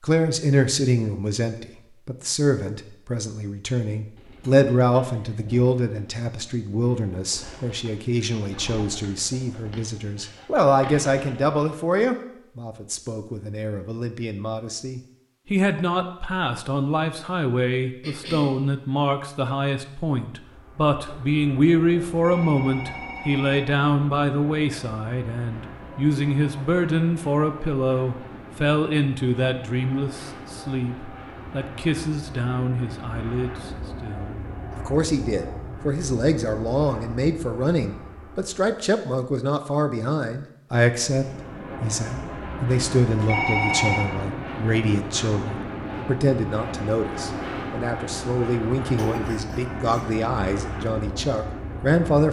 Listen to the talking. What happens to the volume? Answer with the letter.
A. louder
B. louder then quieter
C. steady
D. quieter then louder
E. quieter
C.